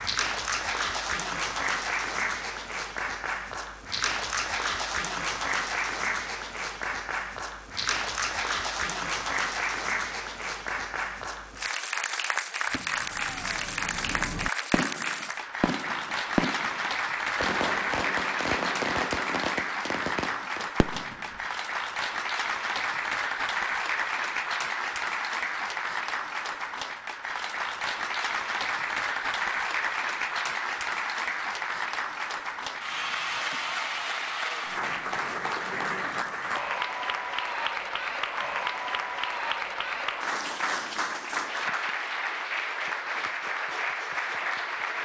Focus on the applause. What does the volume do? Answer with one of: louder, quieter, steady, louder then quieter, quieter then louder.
steady.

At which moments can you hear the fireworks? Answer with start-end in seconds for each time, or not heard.
12.7-21.4.